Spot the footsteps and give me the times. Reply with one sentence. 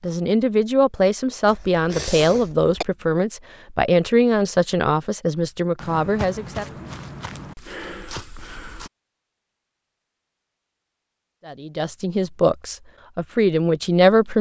The footsteps can be heard from 5.8 to 8.9 s.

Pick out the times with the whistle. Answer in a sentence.
The whistle can't be heard in this clip.